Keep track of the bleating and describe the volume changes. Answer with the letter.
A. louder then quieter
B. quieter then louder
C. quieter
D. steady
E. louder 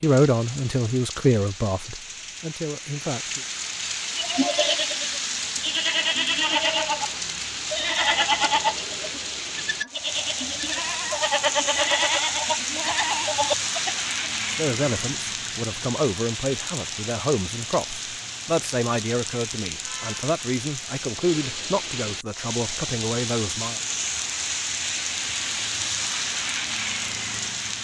D.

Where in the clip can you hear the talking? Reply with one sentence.
You can hear the talking from 0.0 to 3.4 s and from 14.5 to 23.8 s.